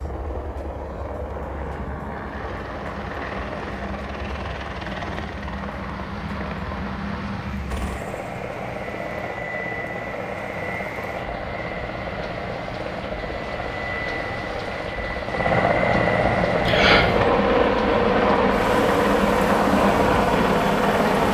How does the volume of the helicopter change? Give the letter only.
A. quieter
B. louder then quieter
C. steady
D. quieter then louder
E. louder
E.